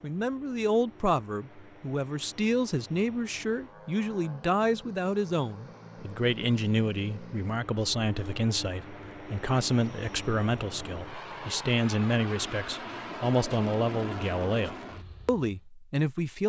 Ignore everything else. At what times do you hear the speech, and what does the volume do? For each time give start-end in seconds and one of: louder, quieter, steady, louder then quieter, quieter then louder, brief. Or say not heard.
0.0-16.4 steady.